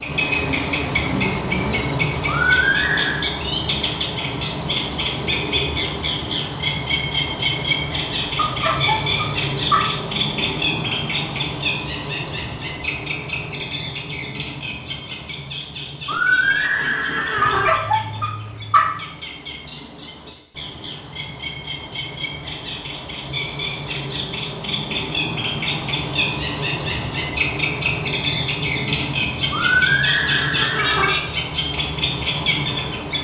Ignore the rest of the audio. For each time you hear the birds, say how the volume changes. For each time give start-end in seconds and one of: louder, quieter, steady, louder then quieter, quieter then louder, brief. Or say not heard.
0.0-33.2 quieter then louder.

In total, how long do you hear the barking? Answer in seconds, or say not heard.
3 s.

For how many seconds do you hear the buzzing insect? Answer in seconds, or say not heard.
2 s.